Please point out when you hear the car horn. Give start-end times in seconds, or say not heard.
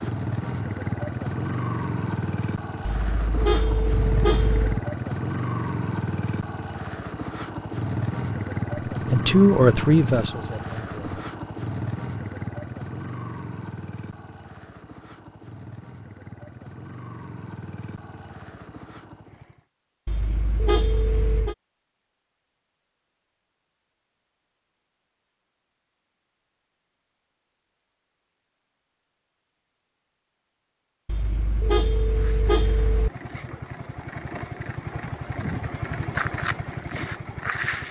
2.9-4.8, 20.1-21.6, 31.1-33.1.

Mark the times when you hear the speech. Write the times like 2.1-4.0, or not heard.
9.1-11.2.